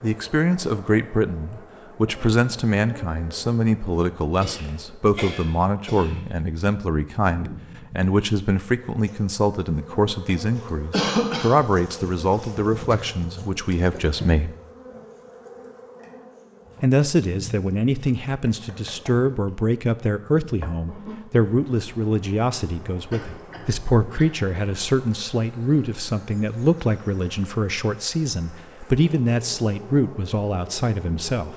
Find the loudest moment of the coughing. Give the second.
11 s.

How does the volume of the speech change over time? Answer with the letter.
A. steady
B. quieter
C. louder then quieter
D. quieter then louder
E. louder
A.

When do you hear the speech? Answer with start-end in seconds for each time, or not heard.
0.0-14.6, 16.8-31.5.